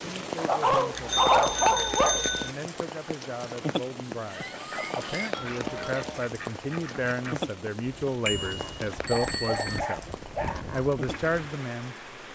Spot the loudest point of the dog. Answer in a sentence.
The volume of the dog peaks at 1 second.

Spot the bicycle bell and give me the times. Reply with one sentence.
You can hear the bicycle bell from 0.9 to 2.5 s, from 5.3 to 6.0 s and from 8.2 to 9.8 s.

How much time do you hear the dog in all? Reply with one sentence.
The dog can be heard for 5 seconds in total.